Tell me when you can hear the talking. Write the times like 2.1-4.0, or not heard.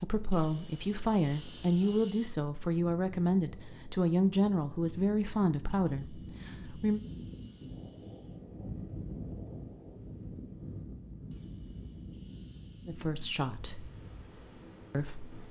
0.0-7.0, 12.8-13.9, 14.9-15.3.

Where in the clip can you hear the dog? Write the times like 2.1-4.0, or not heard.
not heard.